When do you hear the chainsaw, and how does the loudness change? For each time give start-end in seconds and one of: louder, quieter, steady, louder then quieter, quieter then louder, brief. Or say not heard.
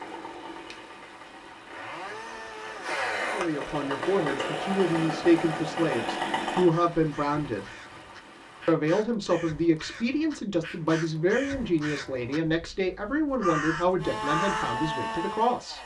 0.0-6.7 louder
13.9-15.8 brief.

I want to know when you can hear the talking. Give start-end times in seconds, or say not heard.
3.2-7.7, 8.7-15.8.